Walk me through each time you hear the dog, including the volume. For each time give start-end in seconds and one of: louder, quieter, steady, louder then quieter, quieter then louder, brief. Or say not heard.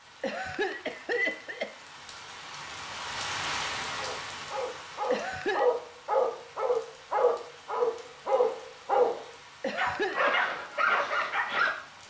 4.0-12.0 steady.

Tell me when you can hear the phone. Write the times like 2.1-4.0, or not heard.
not heard.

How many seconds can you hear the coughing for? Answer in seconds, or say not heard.
3 s.